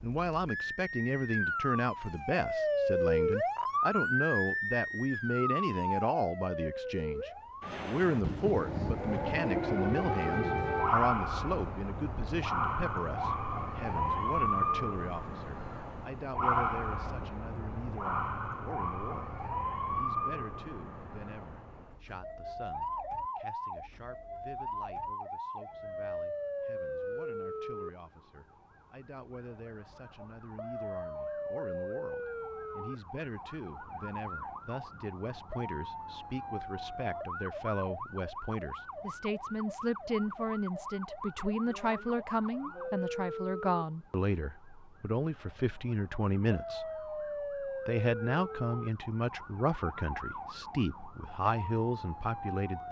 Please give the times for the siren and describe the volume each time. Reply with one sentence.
You can hear the siren from 0.0 to 52.8 s, getting quieter.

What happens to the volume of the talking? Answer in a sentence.
The loudness of the talking goes down, then up.